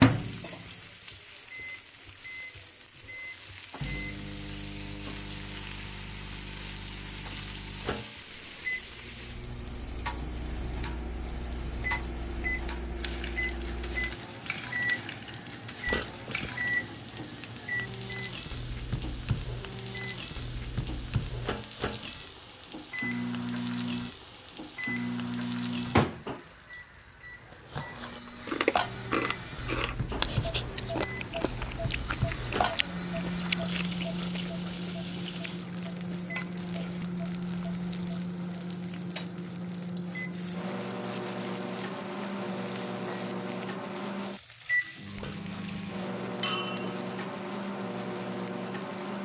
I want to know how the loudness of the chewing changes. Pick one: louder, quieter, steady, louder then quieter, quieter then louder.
quieter.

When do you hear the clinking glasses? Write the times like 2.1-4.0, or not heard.
15.8-16.6, 45.1-47.0.